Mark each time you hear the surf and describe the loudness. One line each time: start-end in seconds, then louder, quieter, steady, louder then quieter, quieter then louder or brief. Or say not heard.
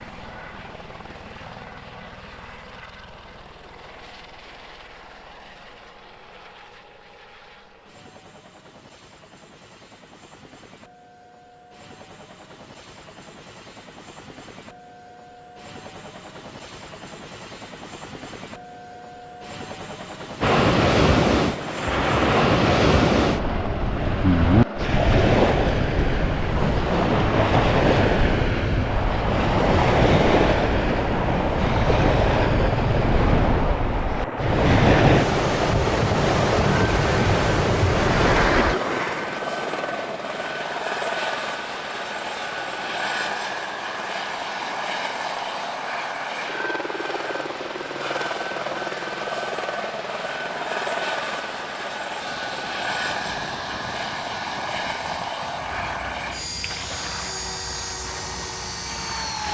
20.4-59.4 quieter.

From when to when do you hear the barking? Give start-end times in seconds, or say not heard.
not heard.